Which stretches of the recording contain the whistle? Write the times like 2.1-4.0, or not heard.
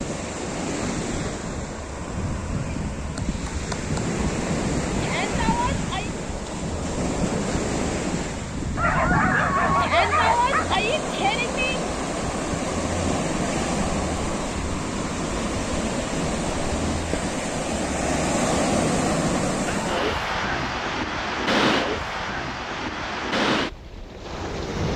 not heard.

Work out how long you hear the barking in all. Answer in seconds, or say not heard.
2 s.